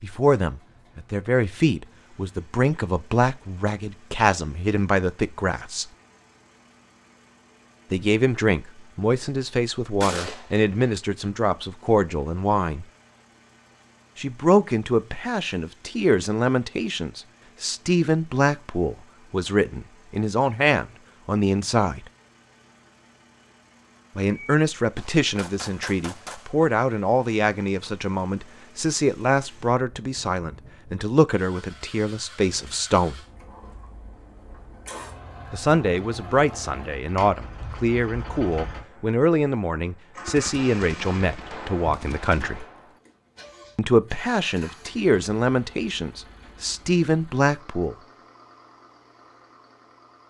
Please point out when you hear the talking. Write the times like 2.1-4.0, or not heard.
0.0-5.8, 7.9-12.8, 14.2-22.0, 24.1-33.2, 35.5-42.6, 43.8-48.0.